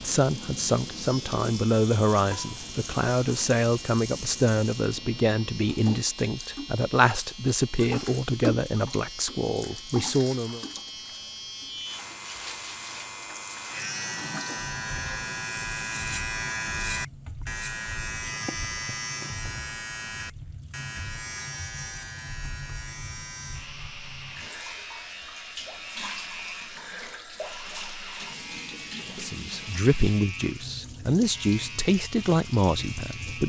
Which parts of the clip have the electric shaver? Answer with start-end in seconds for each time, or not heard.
0.0-33.4.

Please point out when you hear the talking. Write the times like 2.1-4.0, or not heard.
0.0-10.6, 29.1-33.4.